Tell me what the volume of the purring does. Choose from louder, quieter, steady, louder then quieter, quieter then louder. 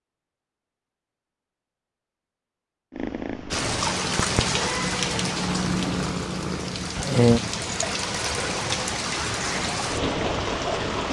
louder.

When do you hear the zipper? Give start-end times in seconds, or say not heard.
not heard.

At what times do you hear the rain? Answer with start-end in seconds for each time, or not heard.
3.5-11.0.